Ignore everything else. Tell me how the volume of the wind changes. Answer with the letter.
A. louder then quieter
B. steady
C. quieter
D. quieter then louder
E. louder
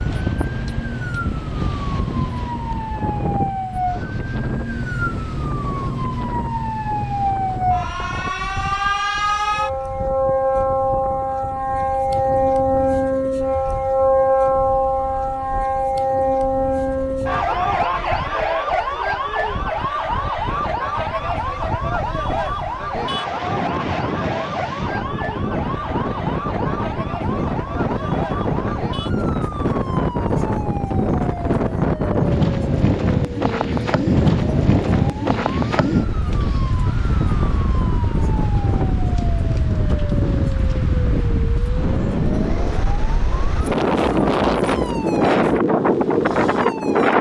D.